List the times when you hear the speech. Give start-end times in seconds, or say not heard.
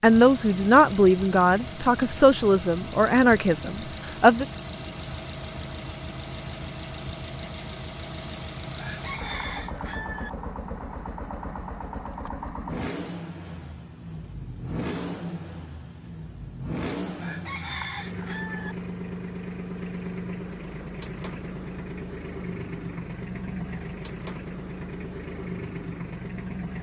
0.0-4.5.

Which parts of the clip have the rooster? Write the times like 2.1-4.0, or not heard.
8.8-10.3, 17.1-18.8.